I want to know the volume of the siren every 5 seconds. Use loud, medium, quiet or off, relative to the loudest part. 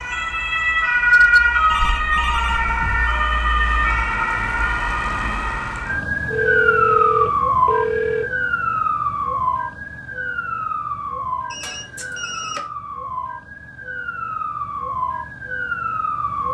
loud, loud, medium, medium.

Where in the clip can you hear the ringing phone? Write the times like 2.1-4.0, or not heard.
1.7-3.0, 6.2-8.2, 11.5-12.7.